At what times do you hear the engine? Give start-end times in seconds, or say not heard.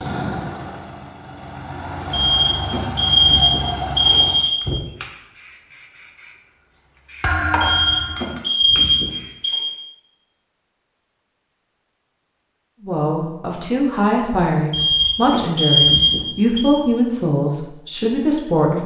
0.0-4.4.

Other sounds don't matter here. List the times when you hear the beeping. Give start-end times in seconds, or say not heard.
2.1-4.8, 7.6-9.7, 14.7-16.6.